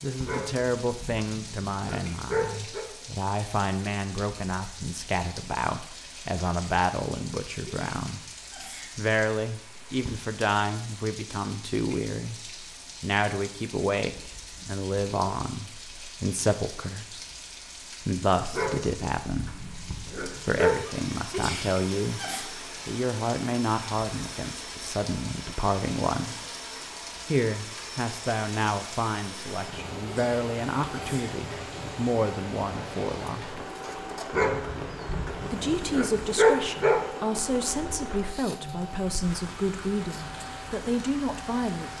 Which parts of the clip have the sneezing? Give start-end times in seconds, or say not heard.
7.7-8.9, 21.3-22.4, 30.1-31.3.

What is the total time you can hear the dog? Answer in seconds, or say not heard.
8 s.